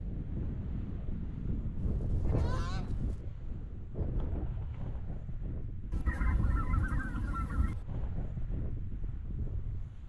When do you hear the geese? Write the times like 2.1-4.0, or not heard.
1.8-3.1, 5.9-7.8.